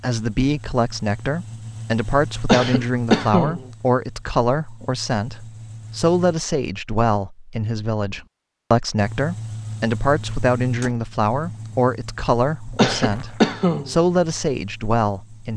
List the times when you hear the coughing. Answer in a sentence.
You can hear the coughing from 2.5 to 3.6 s and from 12.8 to 13.9 s.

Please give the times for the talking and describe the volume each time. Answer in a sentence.
You can hear the talking from 0.0 to 15.5 s, at a steady volume.